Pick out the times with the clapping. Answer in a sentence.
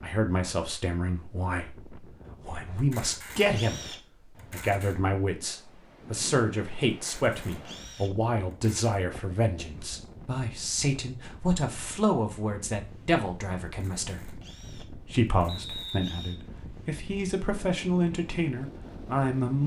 The clapping can't be heard in this clip.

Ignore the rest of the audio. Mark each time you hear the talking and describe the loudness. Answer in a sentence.
The talking can be heard from 0.0 to 19.6 s, at a steady volume.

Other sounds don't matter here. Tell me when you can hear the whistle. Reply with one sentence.
You can hear the whistle from 15.4 to 16.4 s.